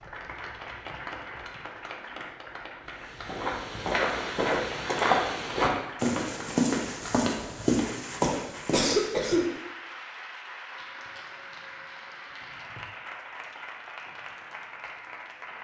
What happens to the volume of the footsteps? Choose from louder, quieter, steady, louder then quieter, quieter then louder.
steady.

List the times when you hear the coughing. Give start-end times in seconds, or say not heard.
8.2-9.4.